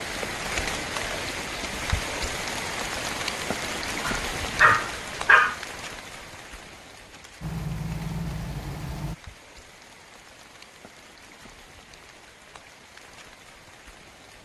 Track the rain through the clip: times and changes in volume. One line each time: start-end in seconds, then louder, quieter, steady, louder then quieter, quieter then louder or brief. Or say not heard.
0.0-14.4 quieter.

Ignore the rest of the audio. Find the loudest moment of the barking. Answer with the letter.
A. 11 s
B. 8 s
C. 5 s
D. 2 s
C.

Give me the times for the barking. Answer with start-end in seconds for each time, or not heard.
4.0-5.5.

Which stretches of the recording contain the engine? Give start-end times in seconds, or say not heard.
7.4-9.2.